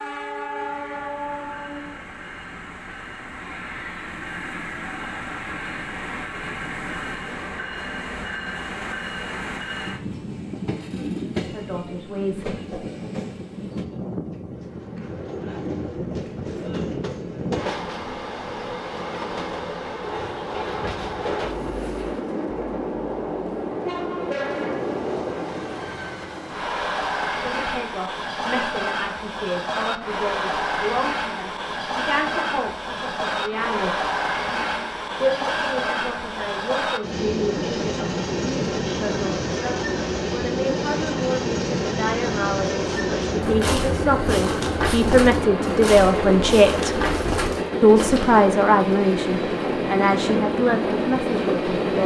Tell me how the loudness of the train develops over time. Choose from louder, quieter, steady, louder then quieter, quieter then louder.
louder.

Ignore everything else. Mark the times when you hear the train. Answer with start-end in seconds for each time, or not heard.
0.0-52.0.